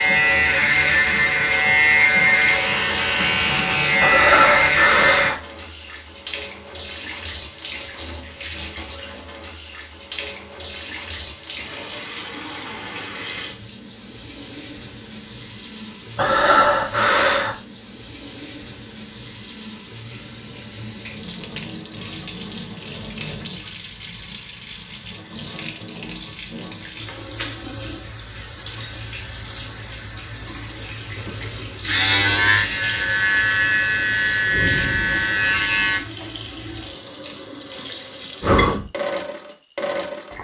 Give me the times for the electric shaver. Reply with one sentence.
You can hear the electric shaver from 0.0 to 5.3 s and from 31.0 to 36.0 s.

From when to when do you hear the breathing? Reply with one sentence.
The breathing can be heard from 4.0 to 5.3 s, from 16.1 to 17.6 s and from 38.4 to 38.9 s.